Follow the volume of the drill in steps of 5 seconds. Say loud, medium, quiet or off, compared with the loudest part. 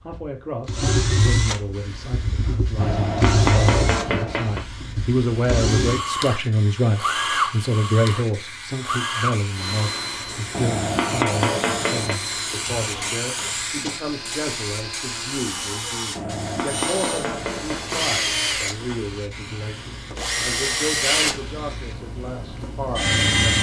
loud, loud, medium, medium, loud.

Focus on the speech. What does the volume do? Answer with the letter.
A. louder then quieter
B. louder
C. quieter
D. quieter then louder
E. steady
A.